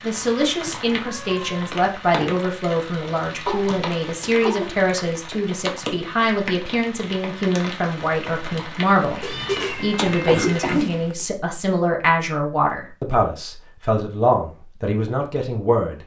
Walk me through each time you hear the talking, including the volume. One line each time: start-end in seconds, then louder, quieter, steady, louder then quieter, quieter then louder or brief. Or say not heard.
0.0-16.0 steady.